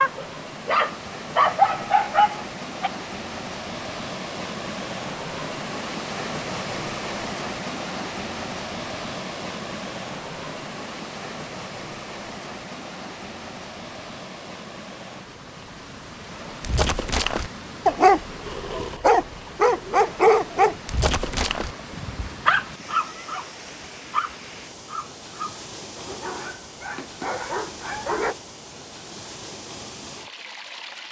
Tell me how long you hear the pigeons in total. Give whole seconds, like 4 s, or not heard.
not heard.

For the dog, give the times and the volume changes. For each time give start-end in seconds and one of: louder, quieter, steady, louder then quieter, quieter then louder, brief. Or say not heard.
0.0-2.9 brief
16.6-28.4 quieter.